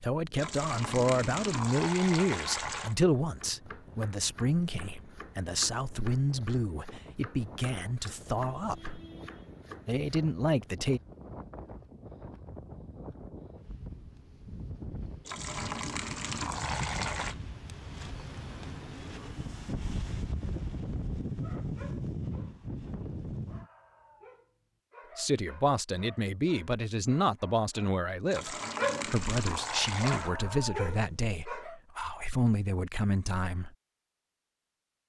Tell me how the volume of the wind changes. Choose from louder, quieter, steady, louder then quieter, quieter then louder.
louder.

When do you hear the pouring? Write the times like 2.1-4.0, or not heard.
0.3-3.0, 15.2-17.4, 28.3-30.3.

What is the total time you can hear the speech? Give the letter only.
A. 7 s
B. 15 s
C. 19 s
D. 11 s
C.